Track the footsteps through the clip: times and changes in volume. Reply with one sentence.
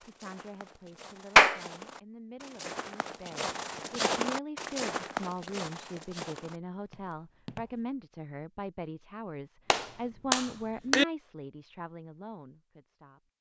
The footsteps can be heard from 0.0 to 7.9 s, getting louder then quieter.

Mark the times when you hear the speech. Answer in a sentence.
You can hear the speech from 0.0 to 13.2 s.